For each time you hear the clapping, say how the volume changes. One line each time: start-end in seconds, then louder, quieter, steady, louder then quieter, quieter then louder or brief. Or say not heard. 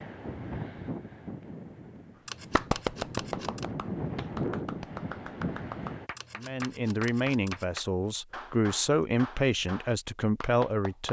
2.5-11.0 quieter.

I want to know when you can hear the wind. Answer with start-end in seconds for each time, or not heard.
0.0-6.1.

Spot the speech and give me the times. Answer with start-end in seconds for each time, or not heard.
6.3-11.0.